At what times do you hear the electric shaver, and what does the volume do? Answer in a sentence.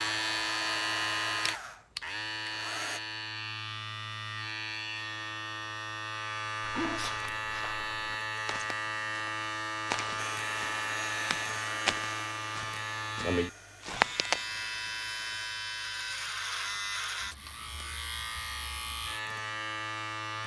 You can hear the electric shaver from 0.0 to 20.4 s, at a steady volume.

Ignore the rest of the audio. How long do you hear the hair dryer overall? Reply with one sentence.
You can hear the hair dryer for 8 seconds altogether.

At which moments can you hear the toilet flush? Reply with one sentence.
You can't hear the toilet flush here.